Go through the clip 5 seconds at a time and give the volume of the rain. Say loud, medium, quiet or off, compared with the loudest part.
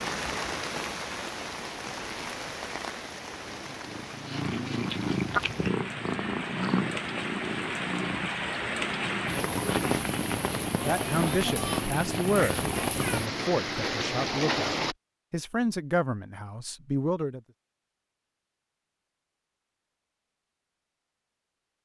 medium, loud, loud, off, off.